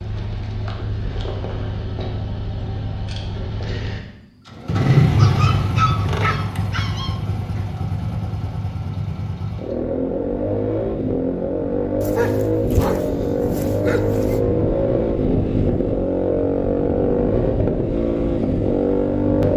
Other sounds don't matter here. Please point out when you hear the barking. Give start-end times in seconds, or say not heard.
5.2-7.2, 12.0-14.4.